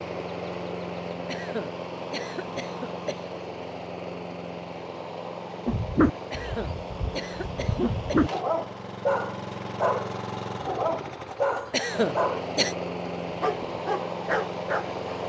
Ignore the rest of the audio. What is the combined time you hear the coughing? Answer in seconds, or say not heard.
5 s.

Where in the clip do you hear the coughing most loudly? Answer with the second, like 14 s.
12 s.